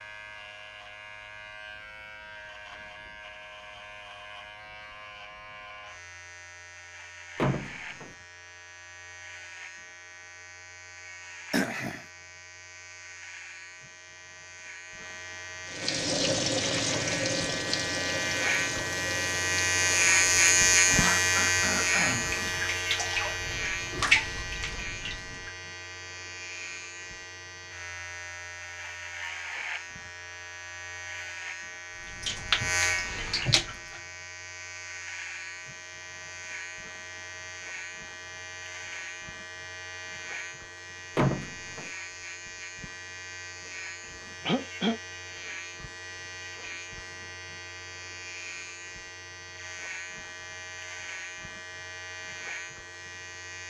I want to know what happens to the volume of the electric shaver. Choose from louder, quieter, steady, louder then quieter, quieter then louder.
louder then quieter.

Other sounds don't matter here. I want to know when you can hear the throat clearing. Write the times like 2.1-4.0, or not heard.
11.5-12.1, 20.9-22.3, 44.0-45.0.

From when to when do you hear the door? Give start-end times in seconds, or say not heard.
7.3-8.1, 41.1-41.9.